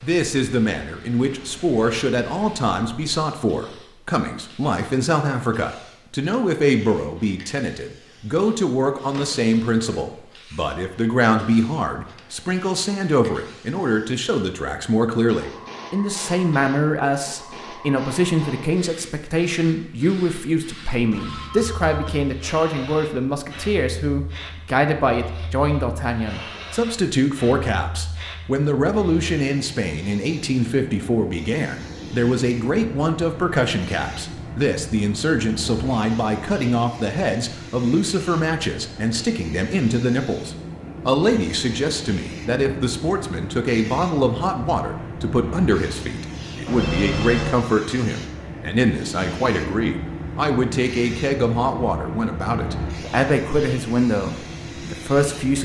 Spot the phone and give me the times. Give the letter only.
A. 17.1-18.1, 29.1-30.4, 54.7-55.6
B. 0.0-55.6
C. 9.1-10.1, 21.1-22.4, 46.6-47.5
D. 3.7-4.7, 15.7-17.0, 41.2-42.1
C.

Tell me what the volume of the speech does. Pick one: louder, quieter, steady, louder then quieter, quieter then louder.
steady.